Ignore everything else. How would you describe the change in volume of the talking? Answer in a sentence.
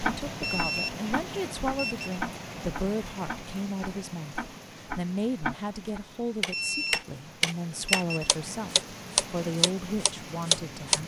The loudness of the talking stays about the same.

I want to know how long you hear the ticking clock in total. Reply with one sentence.
You can hear the ticking clock for 11 seconds altogether.